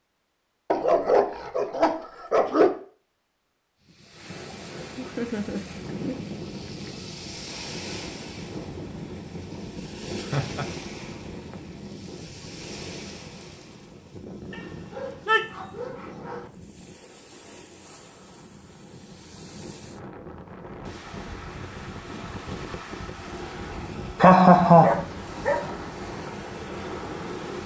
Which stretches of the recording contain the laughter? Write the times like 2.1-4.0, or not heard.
5.0-6.2, 10.2-10.7, 24.2-25.0.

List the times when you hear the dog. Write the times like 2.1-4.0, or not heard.
0.7-2.8, 14.5-16.4, 24.2-25.6.